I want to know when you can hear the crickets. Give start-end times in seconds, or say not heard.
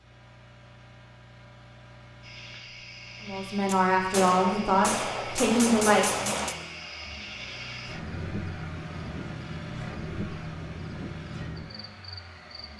2.2-12.7.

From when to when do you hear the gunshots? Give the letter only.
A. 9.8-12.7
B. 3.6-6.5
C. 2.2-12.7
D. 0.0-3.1
B.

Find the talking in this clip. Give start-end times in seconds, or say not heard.
3.2-6.3.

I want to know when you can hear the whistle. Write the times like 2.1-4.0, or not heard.
not heard.